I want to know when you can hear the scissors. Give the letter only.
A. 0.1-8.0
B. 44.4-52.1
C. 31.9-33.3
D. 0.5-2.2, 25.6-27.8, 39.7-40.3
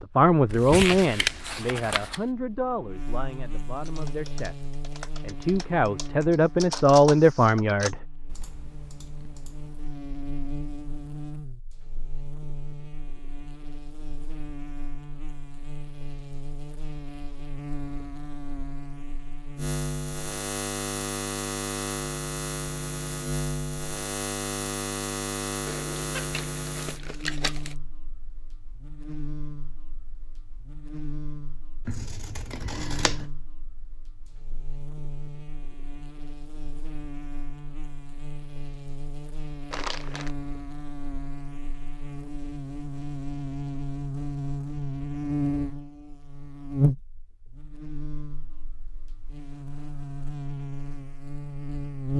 C.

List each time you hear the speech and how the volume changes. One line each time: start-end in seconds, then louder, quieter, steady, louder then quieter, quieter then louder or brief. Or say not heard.
0.1-8.0 quieter then louder.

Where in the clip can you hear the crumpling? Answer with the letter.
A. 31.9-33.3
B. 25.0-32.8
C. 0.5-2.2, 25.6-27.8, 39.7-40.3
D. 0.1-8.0
C.